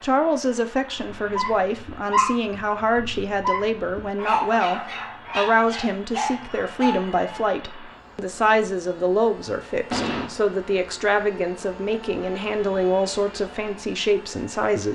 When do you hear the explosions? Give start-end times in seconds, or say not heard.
9.9-10.3.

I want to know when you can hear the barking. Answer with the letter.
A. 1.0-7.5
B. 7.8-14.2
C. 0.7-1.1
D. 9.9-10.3
A.